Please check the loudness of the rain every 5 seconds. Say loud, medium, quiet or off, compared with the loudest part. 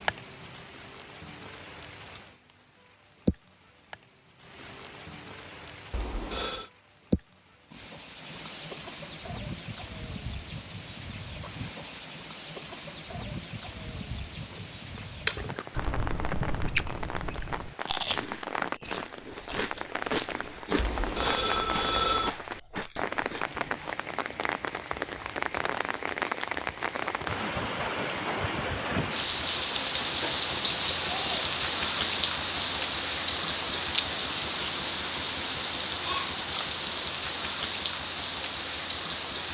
medium, medium, medium, medium, medium, loud, loud, loud.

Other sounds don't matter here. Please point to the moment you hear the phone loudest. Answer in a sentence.
The loudest moment of the phone is at 22 seconds.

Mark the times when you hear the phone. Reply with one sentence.
The phone can be heard from 5.9 to 6.7 s and from 20.8 to 22.3 s.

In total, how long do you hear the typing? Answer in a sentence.
The typing can't be heard in this clip.